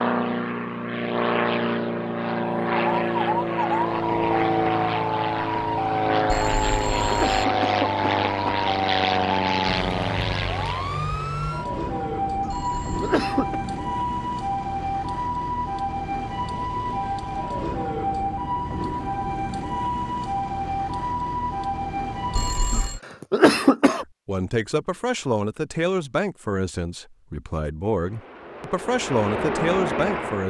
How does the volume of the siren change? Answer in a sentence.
The volume of the siren stays about the same.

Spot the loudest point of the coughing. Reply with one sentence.
The loudest moment of the coughing is at 24 seconds.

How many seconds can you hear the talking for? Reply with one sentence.
You can hear the talking for 6 seconds altogether.